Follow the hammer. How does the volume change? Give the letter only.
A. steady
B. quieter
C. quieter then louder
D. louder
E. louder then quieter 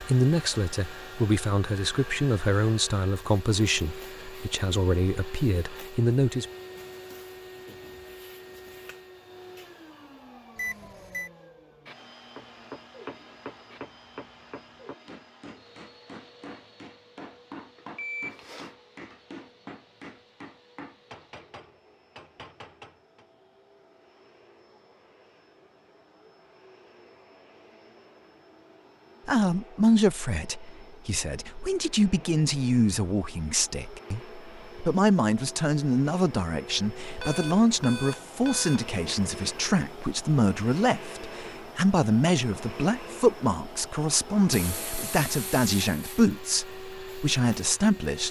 A.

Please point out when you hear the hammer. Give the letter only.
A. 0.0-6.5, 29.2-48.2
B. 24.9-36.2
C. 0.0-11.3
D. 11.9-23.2
D.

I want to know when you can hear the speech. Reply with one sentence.
The speech can be heard from 0.0 to 6.5 s and from 29.2 to 48.2 s.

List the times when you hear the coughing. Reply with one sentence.
The coughing can't be heard in this clip.